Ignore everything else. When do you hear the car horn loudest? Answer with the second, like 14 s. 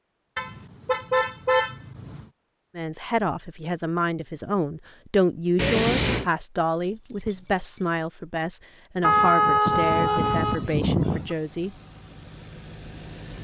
9 s.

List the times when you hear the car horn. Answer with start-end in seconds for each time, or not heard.
0.3-2.2, 5.5-6.2, 9.0-11.3.